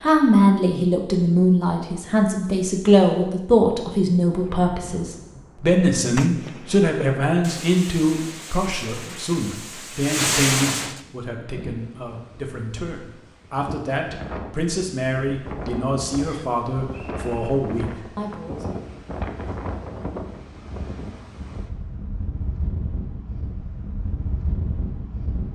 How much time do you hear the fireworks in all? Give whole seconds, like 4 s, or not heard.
7 s.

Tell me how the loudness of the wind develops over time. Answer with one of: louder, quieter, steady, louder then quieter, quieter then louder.
louder.